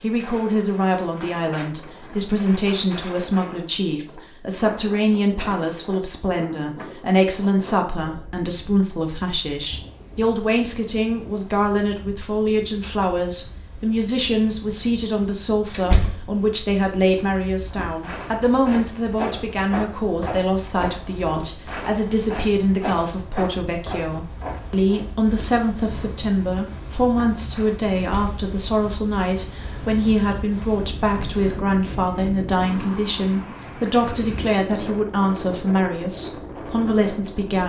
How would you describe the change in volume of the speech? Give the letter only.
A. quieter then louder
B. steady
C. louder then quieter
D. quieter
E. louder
B.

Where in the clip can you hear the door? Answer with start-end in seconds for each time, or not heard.
15.7-16.2, 27.9-28.4.